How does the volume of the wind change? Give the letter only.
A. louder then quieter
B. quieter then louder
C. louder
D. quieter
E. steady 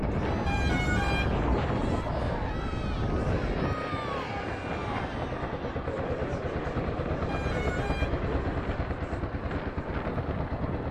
D.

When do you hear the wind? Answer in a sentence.
You can hear the wind from 0.0 to 10.8 s.